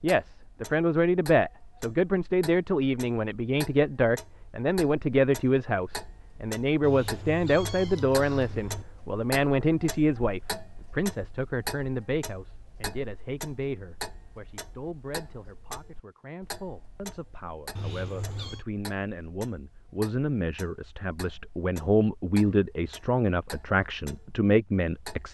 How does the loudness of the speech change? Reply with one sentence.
The volume of the speech goes down, then up.